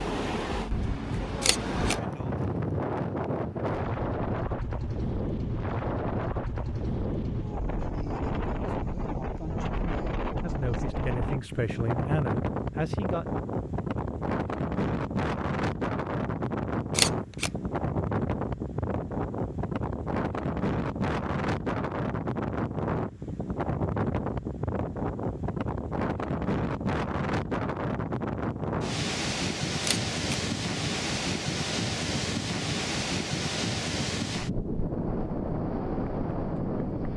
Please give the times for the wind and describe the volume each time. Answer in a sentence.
The wind can be heard from 0.0 to 37.1 s, at a steady volume.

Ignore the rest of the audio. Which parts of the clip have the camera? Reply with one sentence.
You can hear the camera from 1.4 to 1.9 s, from 16.9 to 17.5 s and from 29.8 to 30.4 s.